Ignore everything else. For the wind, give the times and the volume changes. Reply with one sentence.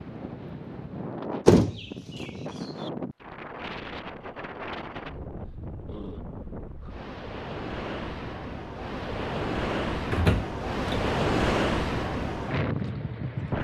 You can hear the wind from 0.0 to 13.5 s, getting louder.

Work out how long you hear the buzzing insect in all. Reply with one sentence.
You can't hear the buzzing insect here.